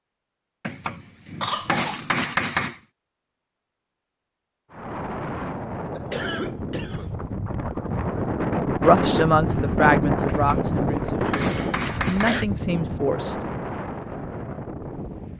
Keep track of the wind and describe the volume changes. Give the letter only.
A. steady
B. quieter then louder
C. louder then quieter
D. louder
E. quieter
C.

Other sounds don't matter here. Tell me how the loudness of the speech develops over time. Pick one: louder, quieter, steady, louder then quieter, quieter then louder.
quieter then louder.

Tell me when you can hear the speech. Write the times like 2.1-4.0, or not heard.
8.8-13.3.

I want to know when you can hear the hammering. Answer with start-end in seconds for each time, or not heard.
0.6-2.8, 10.2-12.5.